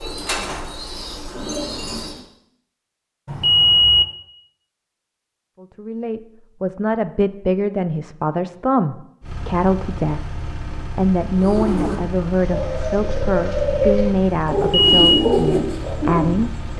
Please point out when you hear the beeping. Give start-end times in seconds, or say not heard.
3.2-4.0, 14.6-15.2.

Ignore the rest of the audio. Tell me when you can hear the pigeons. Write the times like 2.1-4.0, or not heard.
0.0-2.2, 11.3-16.5.